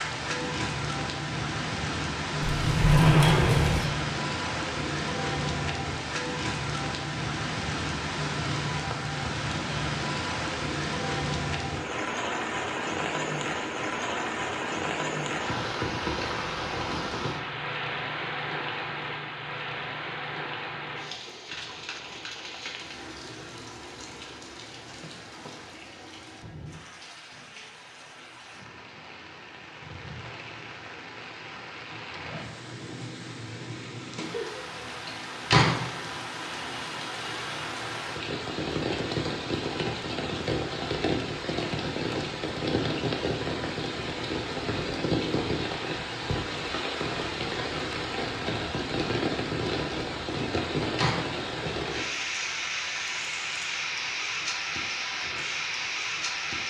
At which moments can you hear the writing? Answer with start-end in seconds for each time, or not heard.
not heard.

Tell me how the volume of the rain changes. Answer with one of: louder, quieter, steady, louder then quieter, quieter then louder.
quieter then louder.